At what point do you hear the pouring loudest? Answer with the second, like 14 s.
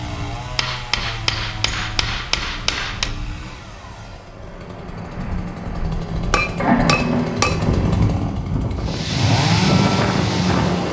7 s.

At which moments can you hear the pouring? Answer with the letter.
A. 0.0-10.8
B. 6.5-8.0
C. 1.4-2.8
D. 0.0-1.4
B.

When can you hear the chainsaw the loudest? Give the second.
10 s.